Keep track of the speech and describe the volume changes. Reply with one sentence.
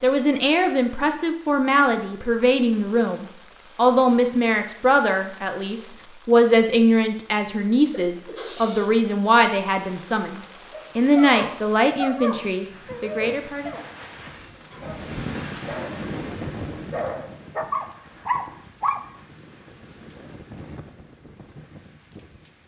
The loudness of the speech stays about the same.